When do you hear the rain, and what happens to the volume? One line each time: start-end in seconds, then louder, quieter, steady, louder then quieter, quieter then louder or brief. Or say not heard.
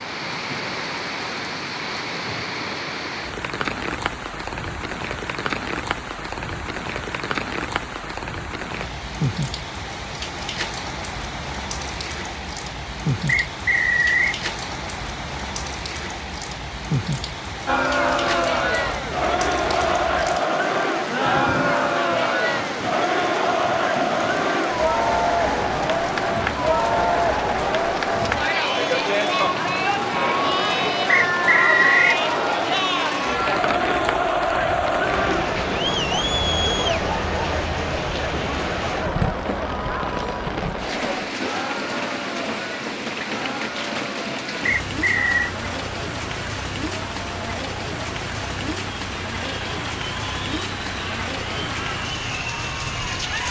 0.0-53.4 steady.